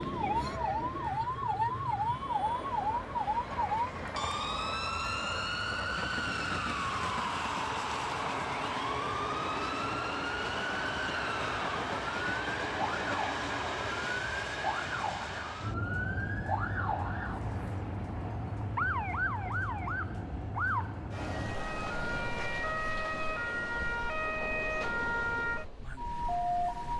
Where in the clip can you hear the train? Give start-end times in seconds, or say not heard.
0.0-26.9.